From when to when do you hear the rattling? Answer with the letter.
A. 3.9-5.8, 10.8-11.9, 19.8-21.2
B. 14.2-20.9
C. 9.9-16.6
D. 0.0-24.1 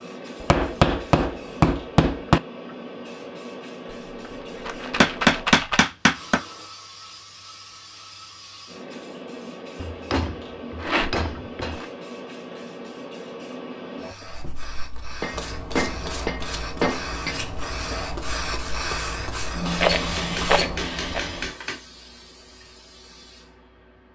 A.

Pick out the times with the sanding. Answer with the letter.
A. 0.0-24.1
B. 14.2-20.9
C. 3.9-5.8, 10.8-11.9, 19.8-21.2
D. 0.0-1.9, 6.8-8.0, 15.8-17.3
B.